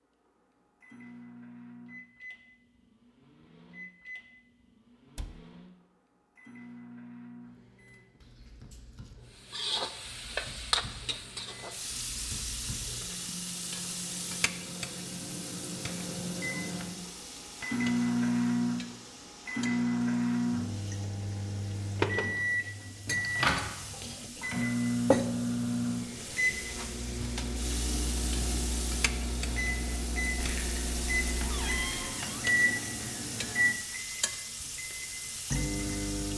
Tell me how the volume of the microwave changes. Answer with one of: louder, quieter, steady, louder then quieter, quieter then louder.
louder.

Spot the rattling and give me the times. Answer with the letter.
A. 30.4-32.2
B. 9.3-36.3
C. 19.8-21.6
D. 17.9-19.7
A.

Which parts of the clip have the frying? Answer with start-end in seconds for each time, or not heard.
9.3-36.3.